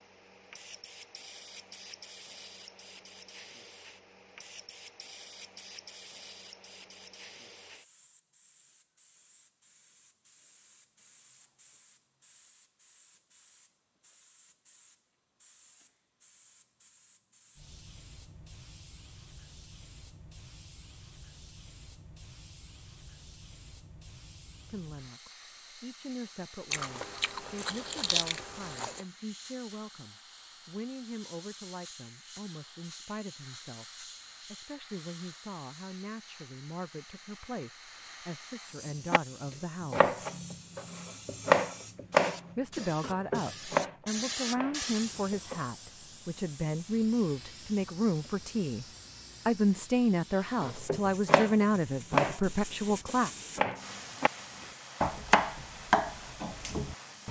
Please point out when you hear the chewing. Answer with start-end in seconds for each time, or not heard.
26.7-29.1.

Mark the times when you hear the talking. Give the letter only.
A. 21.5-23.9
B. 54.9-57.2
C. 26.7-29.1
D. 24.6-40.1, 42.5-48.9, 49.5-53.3
D.